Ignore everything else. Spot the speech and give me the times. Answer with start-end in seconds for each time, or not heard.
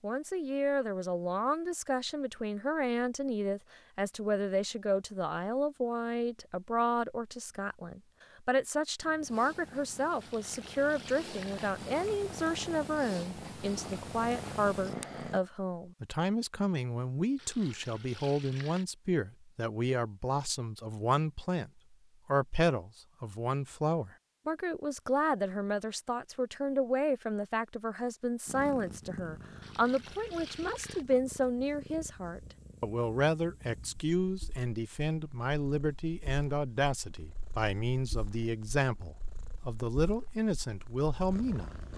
0.0-41.7.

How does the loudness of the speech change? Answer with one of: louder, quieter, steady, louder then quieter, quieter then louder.
steady.